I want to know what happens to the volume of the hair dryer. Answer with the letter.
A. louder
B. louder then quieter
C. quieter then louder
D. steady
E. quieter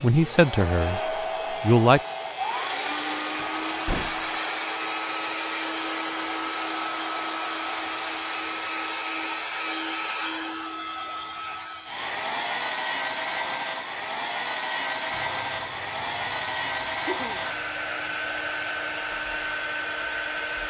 D.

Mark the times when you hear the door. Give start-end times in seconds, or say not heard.
3.4-4.3.